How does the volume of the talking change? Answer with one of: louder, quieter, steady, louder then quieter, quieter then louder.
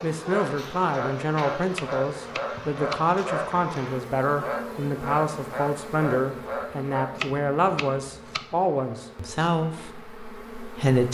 steady.